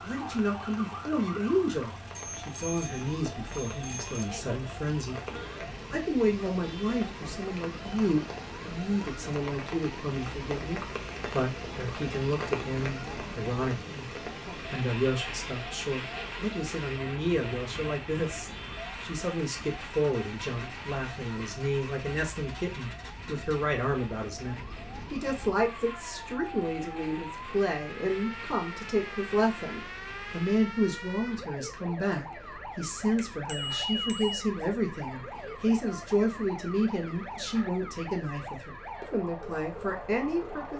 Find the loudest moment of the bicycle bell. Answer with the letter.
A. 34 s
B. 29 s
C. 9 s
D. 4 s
A.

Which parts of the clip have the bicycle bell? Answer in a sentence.
You can hear the bicycle bell from 2.1 to 4.3 s and from 33.1 to 34.4 s.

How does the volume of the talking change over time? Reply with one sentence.
The loudness of the talking stays about the same.